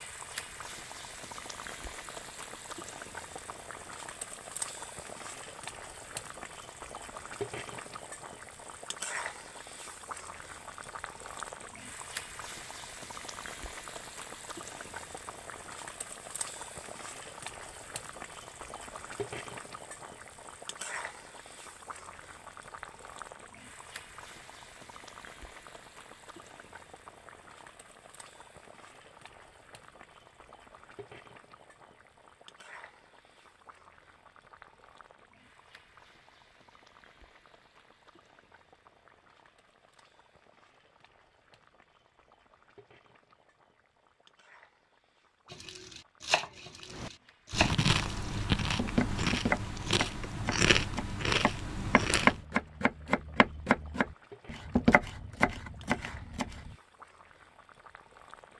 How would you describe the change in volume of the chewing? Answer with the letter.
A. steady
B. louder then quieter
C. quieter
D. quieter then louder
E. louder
A.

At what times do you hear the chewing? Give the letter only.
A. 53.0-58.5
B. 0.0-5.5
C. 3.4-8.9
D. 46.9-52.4
D.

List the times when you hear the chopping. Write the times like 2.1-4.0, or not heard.
45.5-56.7.